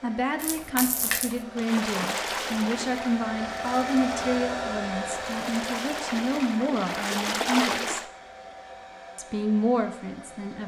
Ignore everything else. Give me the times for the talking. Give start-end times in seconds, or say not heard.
0.0-8.0, 9.2-10.6.